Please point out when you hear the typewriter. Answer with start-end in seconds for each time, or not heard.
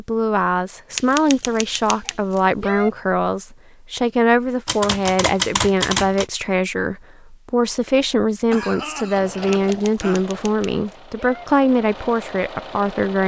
0.9-2.9, 4.7-6.2, 9.5-11.4.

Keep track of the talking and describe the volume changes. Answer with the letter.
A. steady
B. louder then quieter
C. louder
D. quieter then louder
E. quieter
A.